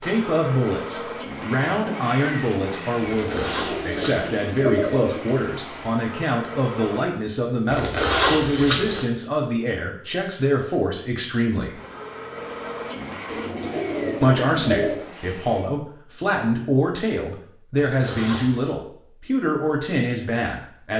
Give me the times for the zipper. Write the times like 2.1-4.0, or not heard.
3.1-4.3, 7.7-9.1, 17.8-18.8.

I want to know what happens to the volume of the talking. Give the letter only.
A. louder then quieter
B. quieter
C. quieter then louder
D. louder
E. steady
E.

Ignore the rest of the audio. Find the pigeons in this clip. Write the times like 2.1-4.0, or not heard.
3.4-5.3, 13.2-15.1.